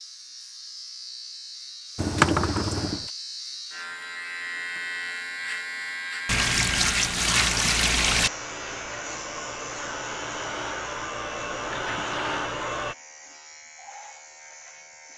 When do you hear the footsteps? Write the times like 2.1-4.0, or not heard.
not heard.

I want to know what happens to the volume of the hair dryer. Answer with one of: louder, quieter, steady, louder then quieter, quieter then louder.
louder.